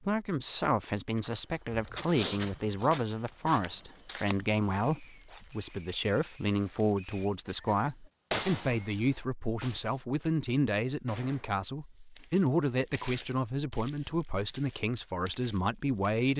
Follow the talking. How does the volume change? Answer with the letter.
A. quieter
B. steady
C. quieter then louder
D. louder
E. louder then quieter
B.